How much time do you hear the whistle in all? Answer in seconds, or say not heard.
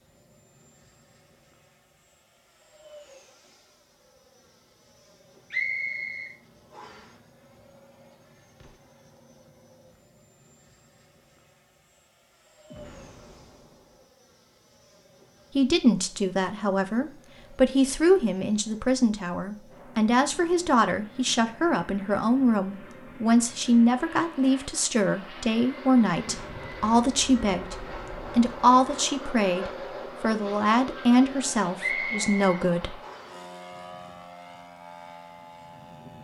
3 s.